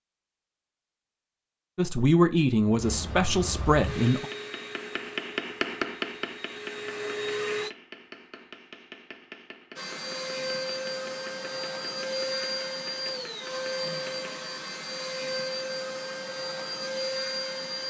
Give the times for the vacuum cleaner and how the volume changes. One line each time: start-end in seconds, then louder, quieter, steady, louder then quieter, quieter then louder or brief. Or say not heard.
2.6-7.7 quieter then louder
9.8-17.8 steady.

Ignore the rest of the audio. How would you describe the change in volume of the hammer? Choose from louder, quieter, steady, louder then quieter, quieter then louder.
quieter.